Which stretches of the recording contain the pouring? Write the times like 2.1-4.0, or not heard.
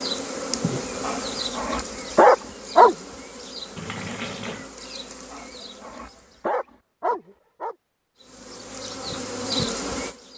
3.8-4.7.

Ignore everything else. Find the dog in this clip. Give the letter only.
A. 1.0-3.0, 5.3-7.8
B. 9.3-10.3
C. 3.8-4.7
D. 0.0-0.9
A.